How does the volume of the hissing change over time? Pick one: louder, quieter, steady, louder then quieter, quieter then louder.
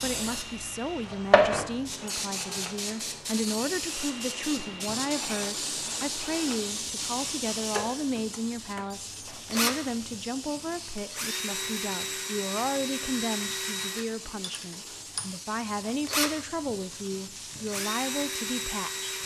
quieter.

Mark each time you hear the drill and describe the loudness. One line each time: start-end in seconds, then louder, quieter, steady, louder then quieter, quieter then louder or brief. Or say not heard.
0.2-19.2 louder.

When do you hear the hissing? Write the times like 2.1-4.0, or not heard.
0.0-19.2.